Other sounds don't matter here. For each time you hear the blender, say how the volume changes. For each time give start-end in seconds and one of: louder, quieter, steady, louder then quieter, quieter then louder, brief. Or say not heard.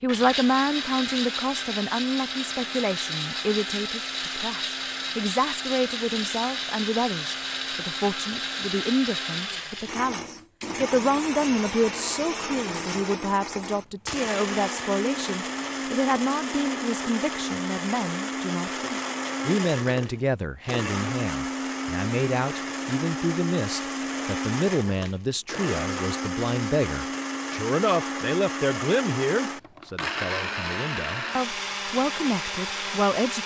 0.1-33.4 steady.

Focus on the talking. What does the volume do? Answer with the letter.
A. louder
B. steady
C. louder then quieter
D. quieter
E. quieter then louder
B.